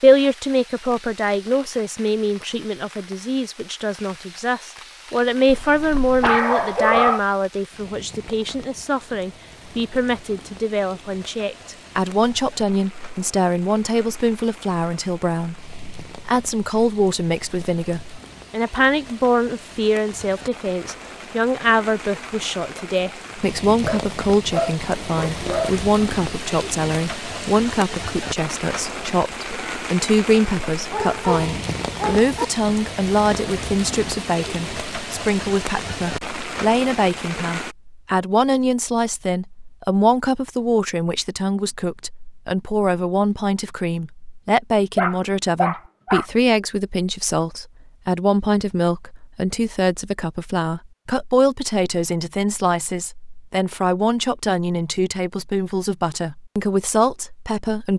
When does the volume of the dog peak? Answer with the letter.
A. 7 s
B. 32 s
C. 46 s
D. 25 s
A.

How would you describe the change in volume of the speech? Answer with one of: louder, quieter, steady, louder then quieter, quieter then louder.
steady.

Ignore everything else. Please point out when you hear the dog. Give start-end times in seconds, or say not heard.
5.5-7.2, 23.9-25.7, 30.9-32.5, 45.0-46.2.